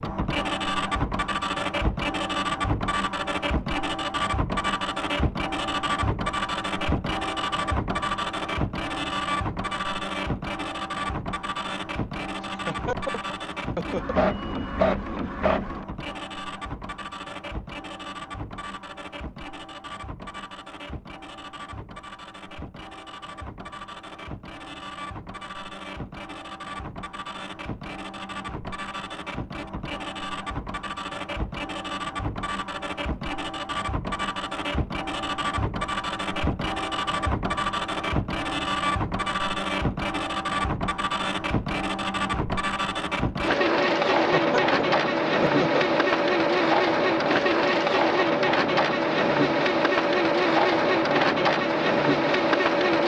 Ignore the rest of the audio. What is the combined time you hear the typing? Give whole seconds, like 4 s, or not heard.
not heard.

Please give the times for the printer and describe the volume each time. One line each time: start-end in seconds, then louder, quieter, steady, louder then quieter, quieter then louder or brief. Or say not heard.
0.0-53.0 quieter then louder.